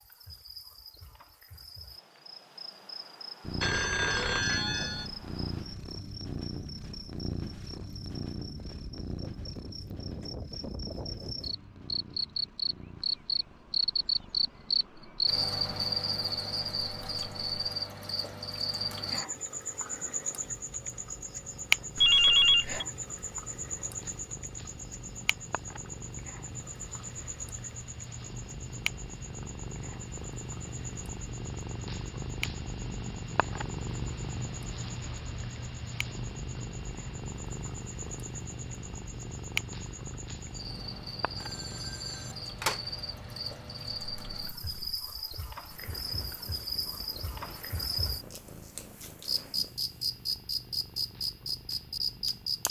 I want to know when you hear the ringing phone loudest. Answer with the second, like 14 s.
22 s.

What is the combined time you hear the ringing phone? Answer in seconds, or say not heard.
4 s.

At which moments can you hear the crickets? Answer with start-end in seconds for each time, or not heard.
0.0-52.6.